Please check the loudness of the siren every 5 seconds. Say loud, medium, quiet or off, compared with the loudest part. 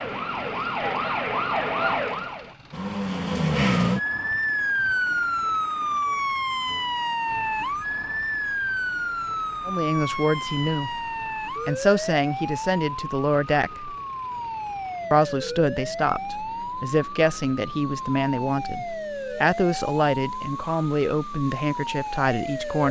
loud, loud, medium, medium, medium.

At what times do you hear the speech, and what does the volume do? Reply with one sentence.
You can hear the speech briefly from 9.7 to 10.9 s; briefly from 11.7 to 13.9 s; and from 15.1 to 22.8 s, at a steady volume.